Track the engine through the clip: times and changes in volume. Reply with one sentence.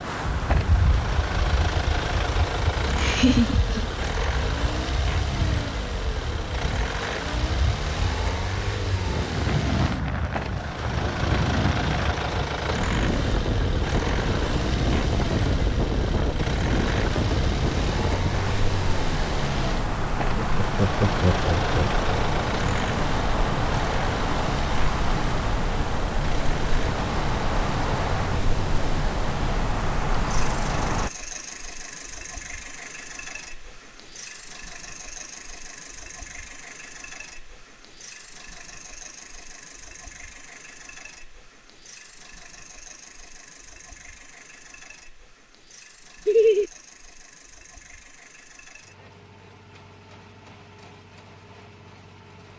The engine can be heard from 0.0 to 52.5 s, getting quieter.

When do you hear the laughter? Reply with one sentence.
You can hear the laughter from 3.0 to 3.9 s, from 20.4 to 22.1 s and from 46.2 to 46.7 s.